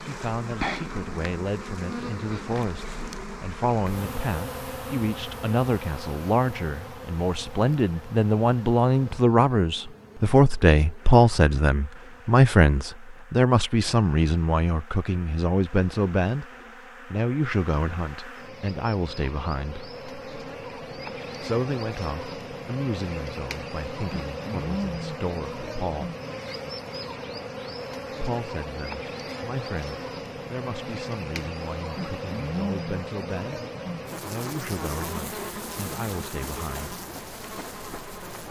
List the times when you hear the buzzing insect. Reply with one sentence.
The buzzing insect can be heard from 0.0 to 38.4 s.